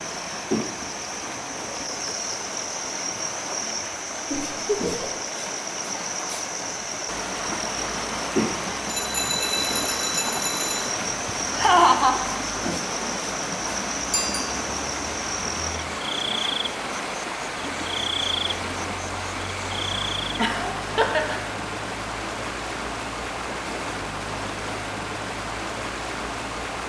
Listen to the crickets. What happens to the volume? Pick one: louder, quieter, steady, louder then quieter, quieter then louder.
steady.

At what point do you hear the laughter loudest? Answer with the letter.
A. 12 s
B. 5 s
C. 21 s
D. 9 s
A.